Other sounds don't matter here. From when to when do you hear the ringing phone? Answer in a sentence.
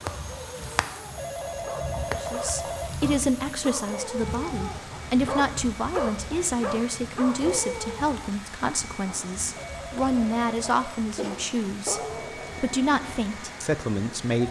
You can hear the ringing phone from 1.1 to 3.1 s and from 9.6 to 11.1 s.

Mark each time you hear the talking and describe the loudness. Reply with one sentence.
The talking can be heard from 2.1 to 14.4 s, at a steady volume.